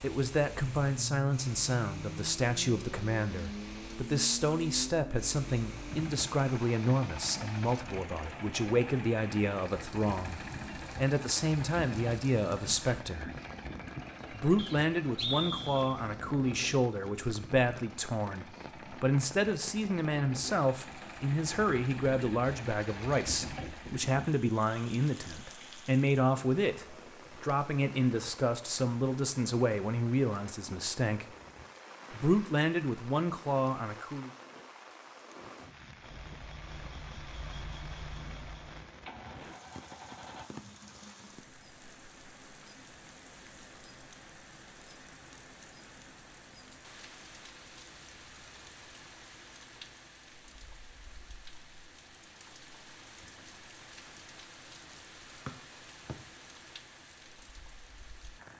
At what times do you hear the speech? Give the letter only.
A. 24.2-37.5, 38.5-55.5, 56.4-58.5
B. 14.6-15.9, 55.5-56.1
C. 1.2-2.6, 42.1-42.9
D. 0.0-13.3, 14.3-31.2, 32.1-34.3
D.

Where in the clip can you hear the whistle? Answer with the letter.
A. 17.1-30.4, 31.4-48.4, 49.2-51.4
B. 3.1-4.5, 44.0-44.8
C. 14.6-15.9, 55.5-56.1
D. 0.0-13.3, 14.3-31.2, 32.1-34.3
C.